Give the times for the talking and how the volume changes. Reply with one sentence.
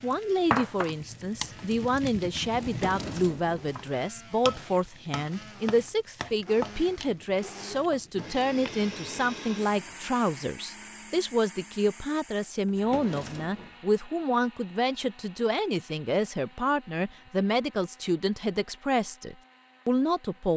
The talking can be heard from 0.0 to 20.5 s, at a steady volume.